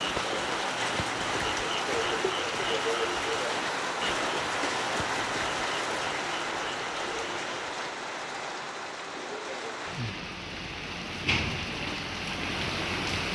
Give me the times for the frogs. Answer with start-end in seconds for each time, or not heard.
0.0-7.7.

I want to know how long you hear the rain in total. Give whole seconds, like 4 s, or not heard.
13 s.